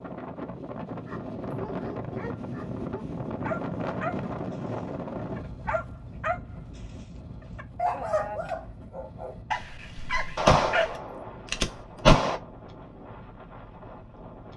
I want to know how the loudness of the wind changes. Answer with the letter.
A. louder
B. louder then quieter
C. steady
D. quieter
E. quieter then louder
D.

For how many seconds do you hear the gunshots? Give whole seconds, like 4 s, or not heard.
2 s.